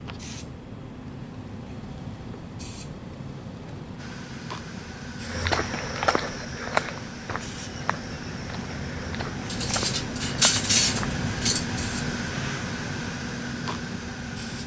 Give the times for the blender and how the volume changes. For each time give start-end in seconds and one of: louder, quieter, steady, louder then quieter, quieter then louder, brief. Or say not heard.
4.0-14.6 louder.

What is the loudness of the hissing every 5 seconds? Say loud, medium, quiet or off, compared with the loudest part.
medium, loud, loud.